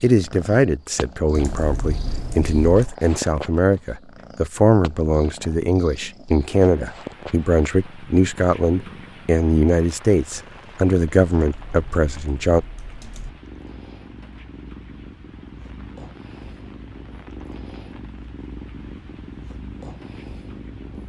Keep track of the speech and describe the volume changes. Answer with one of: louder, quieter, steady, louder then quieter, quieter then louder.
steady.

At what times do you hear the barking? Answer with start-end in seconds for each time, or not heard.
not heard.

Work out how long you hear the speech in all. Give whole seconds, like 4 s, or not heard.
13 s.